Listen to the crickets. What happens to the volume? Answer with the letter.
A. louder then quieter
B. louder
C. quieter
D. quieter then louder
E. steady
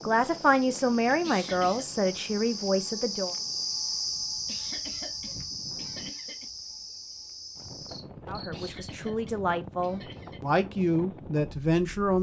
A.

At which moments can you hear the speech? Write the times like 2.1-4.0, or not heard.
0.1-3.4, 8.2-12.1.